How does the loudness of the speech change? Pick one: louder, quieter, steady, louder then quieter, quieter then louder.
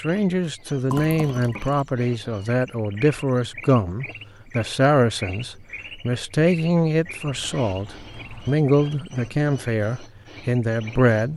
steady.